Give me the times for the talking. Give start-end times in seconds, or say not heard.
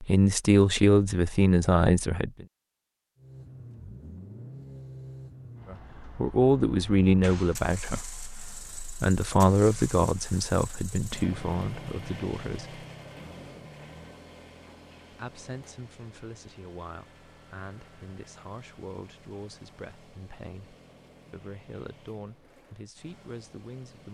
0.0-2.5, 5.7-12.8, 15.1-24.0.